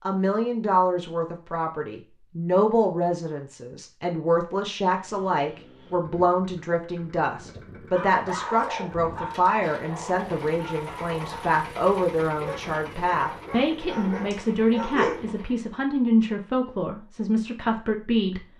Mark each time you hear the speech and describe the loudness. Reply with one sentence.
You can hear the speech from 0.0 to 18.4 s, at a steady volume.